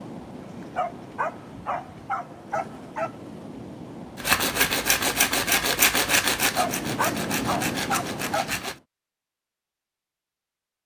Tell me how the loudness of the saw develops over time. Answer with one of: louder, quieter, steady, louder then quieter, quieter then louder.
quieter.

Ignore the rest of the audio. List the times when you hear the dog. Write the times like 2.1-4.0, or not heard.
0.4-3.1, 6.4-8.4.